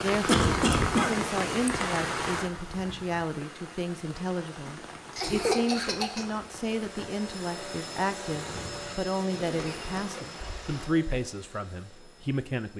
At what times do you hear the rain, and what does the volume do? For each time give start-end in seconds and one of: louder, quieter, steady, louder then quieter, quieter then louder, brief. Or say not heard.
0.0-10.9 quieter.